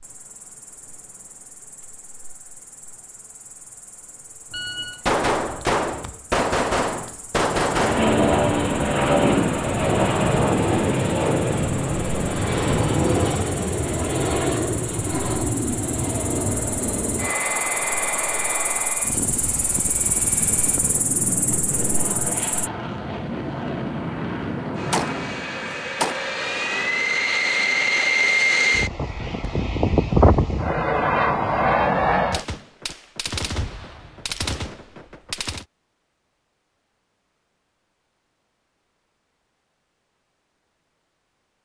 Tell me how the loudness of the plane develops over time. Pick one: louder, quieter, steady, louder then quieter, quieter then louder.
quieter then louder.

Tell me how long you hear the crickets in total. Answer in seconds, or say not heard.
23 s.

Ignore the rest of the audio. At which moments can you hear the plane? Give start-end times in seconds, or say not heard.
7.7-32.5.